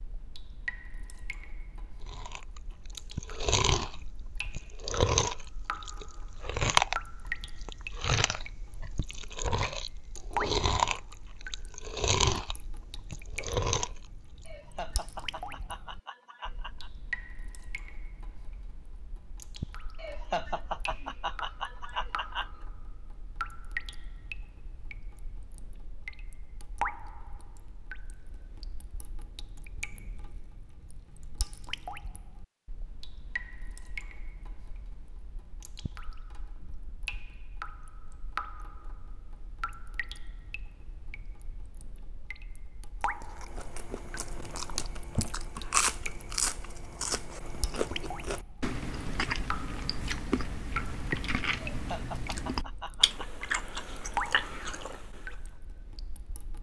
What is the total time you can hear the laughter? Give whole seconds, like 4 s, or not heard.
7 s.